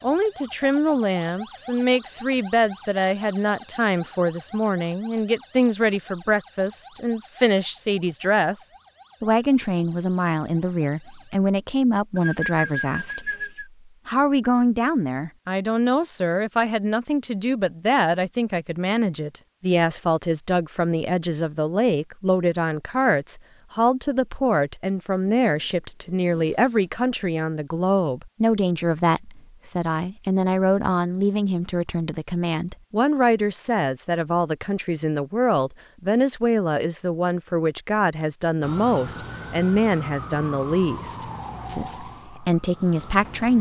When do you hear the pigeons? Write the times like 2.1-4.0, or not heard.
12.2-13.7, 25.4-26.9.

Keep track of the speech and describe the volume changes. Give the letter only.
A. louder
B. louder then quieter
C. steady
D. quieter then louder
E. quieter
C.